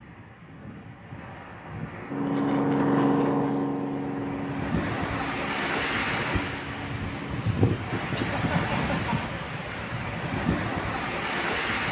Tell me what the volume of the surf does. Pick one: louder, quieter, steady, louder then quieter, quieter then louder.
louder.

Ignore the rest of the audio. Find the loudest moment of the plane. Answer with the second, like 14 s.
3 s.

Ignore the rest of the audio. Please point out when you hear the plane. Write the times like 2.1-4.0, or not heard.
2.0-7.5.